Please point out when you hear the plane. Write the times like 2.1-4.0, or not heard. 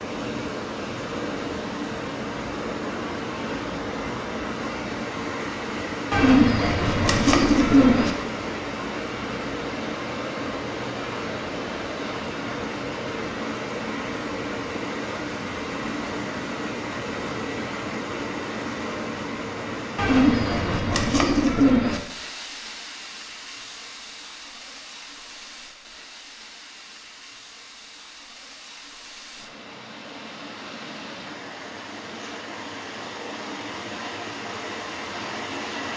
not heard.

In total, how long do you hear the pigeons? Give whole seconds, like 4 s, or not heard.
4 s.